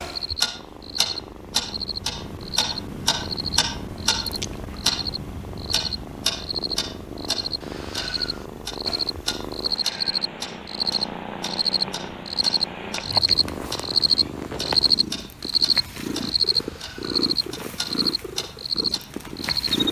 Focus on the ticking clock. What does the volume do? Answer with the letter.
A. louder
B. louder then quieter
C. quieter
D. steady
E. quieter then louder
C.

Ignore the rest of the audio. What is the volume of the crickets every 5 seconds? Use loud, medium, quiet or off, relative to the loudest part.
medium, medium, loud, loud.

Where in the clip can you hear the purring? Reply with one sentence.
The purring can be heard from 0.0 to 19.8 s.